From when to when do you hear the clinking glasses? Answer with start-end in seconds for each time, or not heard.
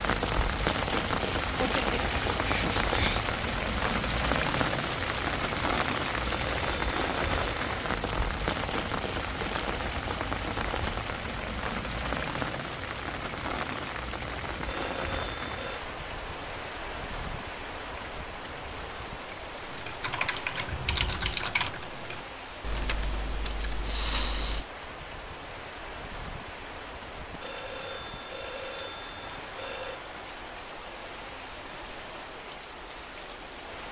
not heard.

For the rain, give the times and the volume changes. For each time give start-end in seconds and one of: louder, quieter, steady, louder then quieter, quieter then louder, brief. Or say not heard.
0.0-33.8 quieter.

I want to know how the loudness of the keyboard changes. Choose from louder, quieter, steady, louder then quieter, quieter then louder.
louder then quieter.